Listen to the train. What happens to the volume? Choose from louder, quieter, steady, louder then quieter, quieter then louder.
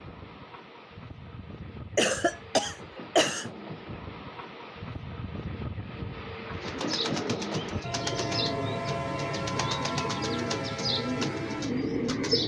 louder.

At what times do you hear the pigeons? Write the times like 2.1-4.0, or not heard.
6.5-12.4.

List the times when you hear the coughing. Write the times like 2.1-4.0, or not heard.
1.9-3.5.